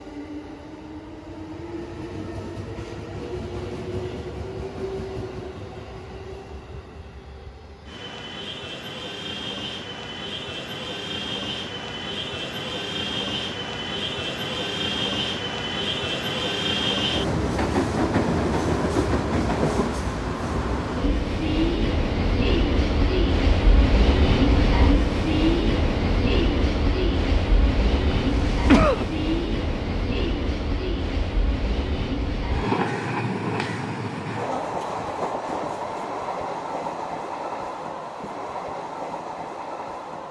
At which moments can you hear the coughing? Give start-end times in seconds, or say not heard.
28.3-29.1.